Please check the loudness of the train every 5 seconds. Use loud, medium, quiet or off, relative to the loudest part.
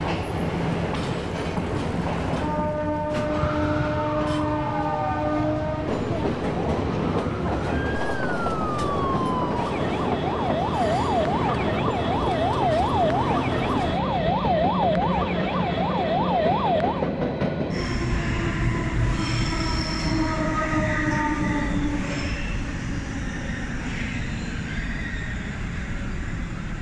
loud, loud, loud, loud, loud, medium.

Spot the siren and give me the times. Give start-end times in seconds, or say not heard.
3.1-17.1.